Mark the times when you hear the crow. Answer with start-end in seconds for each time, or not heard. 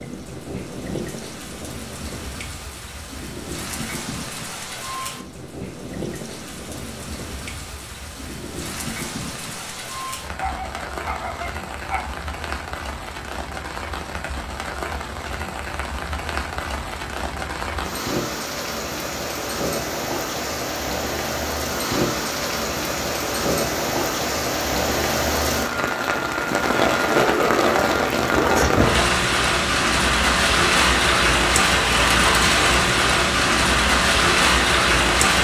not heard.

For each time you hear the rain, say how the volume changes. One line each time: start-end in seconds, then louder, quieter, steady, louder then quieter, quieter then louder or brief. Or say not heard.
0.0-35.3 louder.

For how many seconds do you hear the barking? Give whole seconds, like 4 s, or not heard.
4 s.